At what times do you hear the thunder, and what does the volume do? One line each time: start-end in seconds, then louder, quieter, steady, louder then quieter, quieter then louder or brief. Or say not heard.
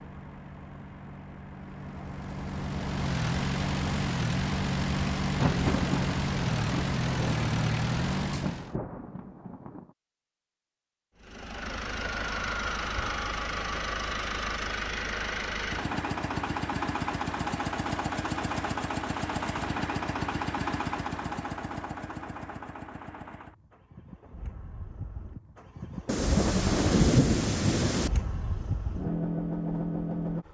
5.2-9.8 quieter
26.1-28.1 brief.